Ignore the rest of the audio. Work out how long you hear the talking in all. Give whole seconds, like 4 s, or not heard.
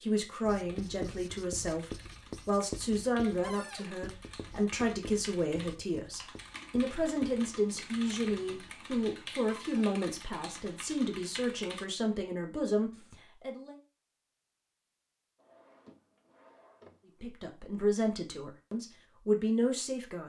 17 s.